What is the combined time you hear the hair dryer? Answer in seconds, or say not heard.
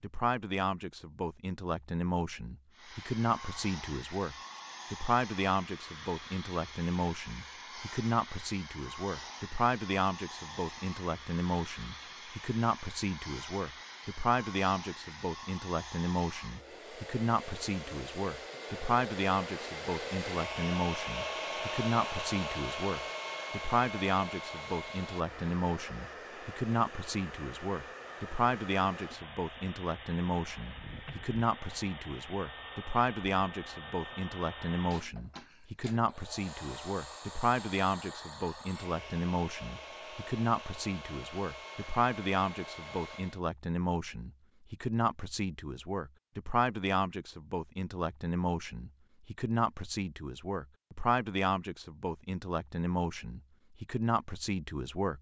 41 s.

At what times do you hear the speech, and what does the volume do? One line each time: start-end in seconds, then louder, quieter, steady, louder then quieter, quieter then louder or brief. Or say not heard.
0.0-55.1 steady.